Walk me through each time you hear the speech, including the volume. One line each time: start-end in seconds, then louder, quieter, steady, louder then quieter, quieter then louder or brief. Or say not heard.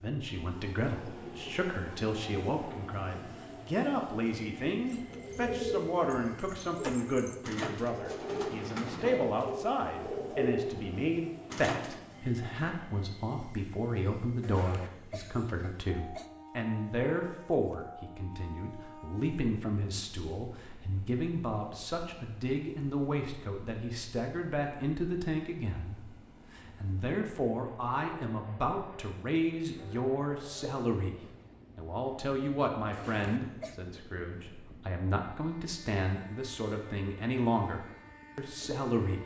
0.0-39.2 steady.